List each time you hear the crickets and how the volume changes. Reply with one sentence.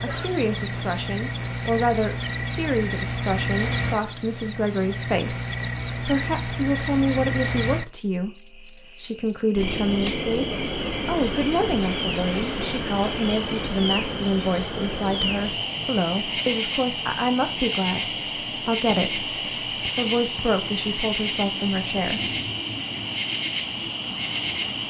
The crickets can be heard from 0.0 to 24.8 s, at a steady volume.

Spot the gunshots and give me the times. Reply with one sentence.
The gunshots can't be heard in this clip.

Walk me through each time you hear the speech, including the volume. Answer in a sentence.
The speech can be heard from 0.0 to 22.2 s, at a steady volume.